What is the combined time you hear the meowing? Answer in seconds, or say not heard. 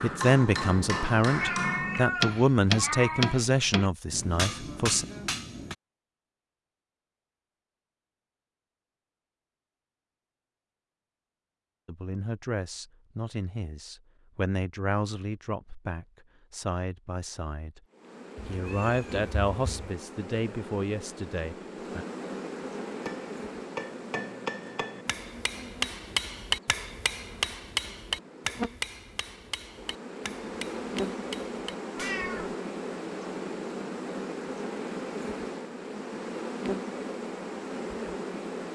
4 s.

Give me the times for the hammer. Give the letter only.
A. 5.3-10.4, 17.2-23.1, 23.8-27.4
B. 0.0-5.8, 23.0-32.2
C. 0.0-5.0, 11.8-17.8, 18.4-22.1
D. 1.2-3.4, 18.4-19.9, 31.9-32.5
B.